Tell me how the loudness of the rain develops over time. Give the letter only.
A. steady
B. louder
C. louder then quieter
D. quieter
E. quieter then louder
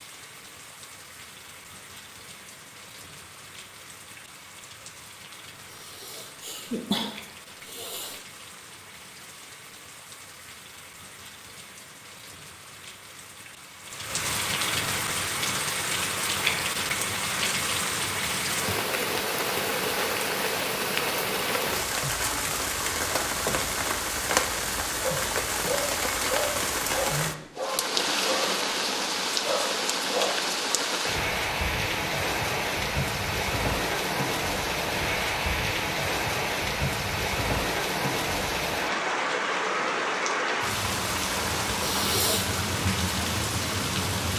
B.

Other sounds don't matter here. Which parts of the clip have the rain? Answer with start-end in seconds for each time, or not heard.
0.0-44.3.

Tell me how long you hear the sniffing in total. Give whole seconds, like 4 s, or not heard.
3 s.